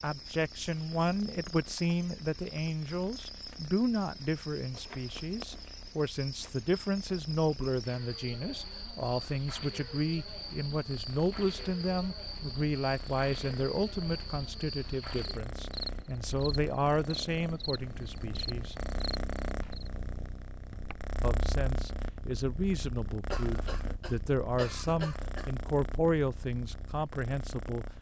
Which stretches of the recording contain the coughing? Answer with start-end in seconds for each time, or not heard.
23.3-25.5.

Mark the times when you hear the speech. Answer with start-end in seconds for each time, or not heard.
0.0-18.8, 21.2-27.9.